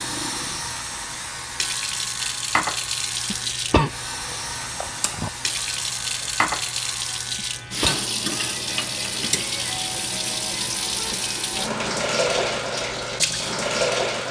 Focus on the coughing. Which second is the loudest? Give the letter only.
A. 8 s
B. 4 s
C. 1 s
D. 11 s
B.